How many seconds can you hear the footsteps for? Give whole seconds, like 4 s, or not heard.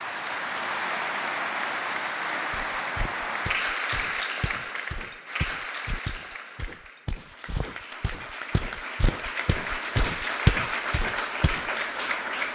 9 s.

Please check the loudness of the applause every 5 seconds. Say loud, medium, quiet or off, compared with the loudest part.
loud, medium, loud.